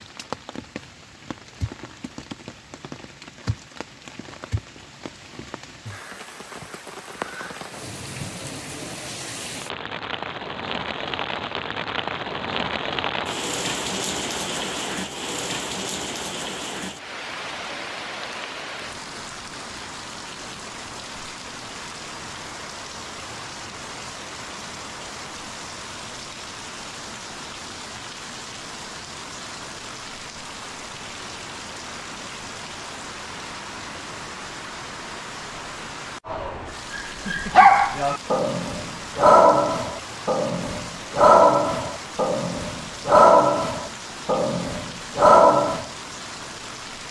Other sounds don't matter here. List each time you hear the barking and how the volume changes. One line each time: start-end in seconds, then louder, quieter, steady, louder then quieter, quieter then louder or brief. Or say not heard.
36.2-45.9 steady.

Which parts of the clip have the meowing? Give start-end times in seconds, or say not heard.
not heard.